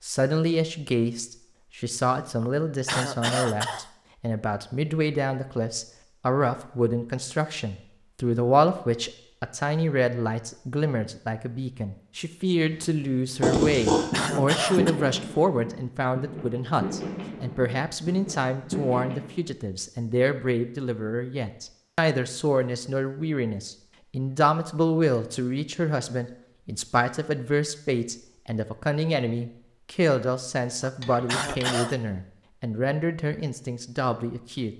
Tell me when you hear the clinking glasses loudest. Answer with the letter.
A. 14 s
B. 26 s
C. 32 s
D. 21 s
A.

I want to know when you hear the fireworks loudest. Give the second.
15 s.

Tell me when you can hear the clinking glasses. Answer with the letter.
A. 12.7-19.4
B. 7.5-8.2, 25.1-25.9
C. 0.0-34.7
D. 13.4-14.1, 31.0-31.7
D.